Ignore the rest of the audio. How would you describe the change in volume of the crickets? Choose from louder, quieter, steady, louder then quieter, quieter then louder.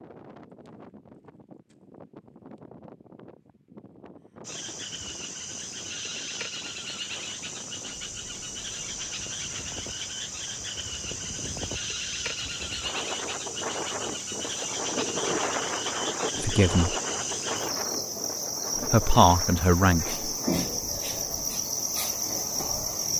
louder.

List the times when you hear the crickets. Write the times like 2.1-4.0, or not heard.
4.4-23.1.